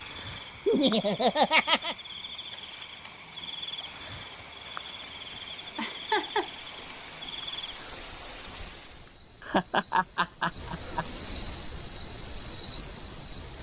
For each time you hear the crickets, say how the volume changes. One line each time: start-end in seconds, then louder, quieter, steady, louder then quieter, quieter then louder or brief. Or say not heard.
0.0-13.5 louder.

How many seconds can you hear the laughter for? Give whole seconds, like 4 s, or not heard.
4 s.